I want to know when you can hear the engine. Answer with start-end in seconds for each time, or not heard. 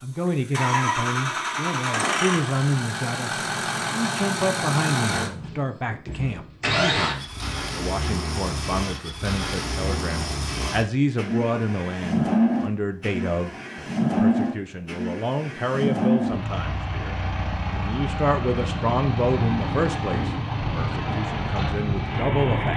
0.1-22.7.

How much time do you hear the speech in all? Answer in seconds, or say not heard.
23 s.